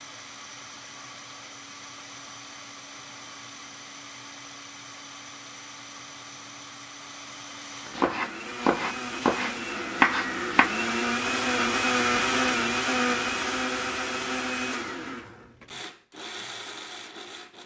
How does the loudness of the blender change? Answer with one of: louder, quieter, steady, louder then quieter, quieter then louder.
louder then quieter.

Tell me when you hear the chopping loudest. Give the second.
10 s.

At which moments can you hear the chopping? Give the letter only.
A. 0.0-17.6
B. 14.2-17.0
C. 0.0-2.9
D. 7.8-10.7
D.